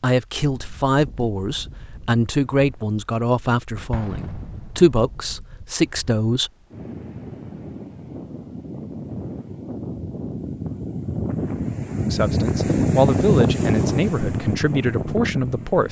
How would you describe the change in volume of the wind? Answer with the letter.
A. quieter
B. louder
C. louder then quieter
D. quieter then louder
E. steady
B.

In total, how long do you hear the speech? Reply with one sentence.
The speech can be heard for 10 seconds in total.